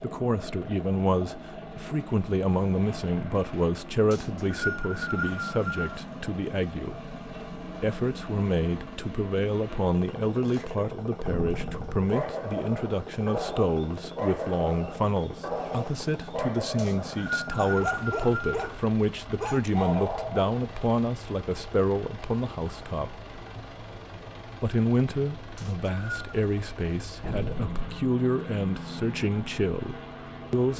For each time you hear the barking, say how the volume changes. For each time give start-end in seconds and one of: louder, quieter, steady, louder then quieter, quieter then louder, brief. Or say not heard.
12.1-20.4 steady.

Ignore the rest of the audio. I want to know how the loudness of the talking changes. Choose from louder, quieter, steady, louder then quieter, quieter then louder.
steady.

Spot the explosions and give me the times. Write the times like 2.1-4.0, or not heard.
11.2-12.1, 27.2-28.1.